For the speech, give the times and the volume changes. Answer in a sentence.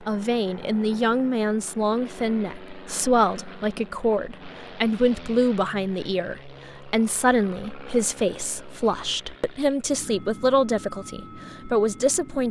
You can hear the speech from 0.1 to 12.4 s, at a steady volume.